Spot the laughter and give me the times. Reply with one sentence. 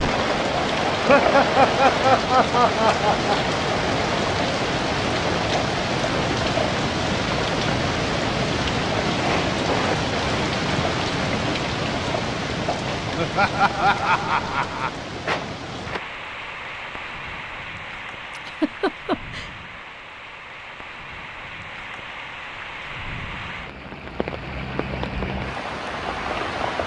You can hear the laughter from 0.9 to 3.4 s, from 13.2 to 14.9 s and from 18.4 to 19.5 s.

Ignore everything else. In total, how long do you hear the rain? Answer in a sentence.
You can hear the rain for 27 seconds altogether.